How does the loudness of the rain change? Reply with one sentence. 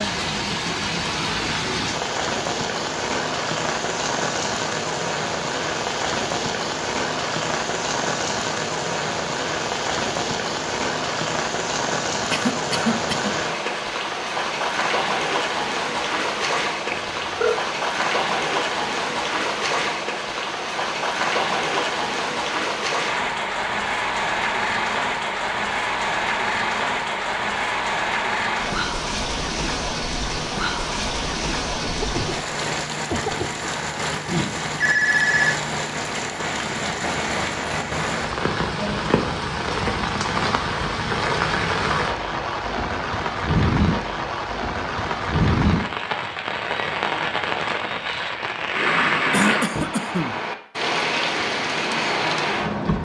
The volume of the rain stays about the same.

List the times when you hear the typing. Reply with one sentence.
You can't hear the typing here.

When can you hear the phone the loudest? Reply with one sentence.
The volume of the phone peaks at 35 seconds.